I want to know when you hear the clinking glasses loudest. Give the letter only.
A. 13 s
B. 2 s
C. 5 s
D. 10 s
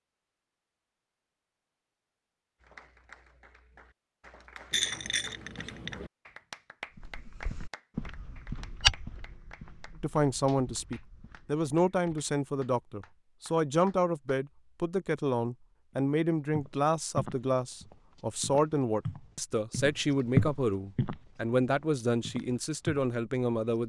C.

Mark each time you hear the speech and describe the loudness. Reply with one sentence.
The speech can be heard from 10.0 to 23.8 s, at a steady volume.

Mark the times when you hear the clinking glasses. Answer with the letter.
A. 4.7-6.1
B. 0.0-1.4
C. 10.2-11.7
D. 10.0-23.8
A.